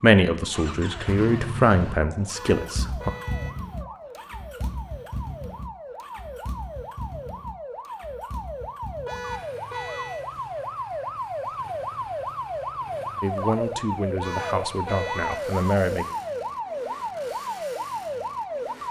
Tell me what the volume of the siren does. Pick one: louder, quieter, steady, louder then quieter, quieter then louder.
louder.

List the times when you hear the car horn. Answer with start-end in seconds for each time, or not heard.
2.4-3.5, 9.1-10.2, 14.2-15.4.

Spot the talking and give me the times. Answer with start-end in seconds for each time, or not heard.
0.0-3.1, 13.2-16.1.